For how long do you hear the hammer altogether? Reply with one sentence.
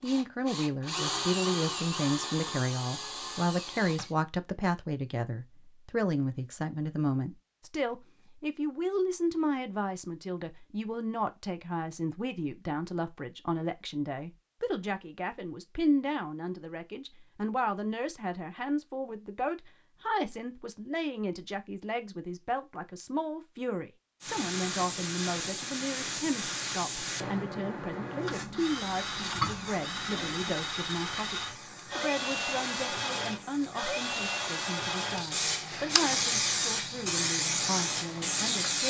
You can't hear the hammer here.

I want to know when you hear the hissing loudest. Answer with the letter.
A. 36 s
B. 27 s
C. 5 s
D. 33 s
A.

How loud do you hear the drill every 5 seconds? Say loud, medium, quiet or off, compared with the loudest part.
loud, off, off, off, off, loud, loud, medium.